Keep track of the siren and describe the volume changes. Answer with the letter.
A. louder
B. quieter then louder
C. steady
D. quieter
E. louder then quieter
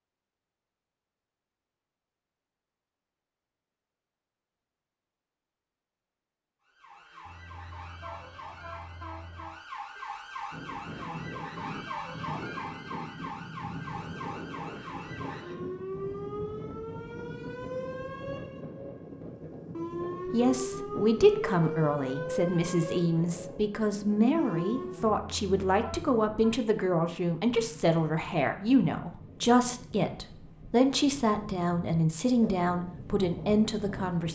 A.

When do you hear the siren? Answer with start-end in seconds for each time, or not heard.
6.7-25.1.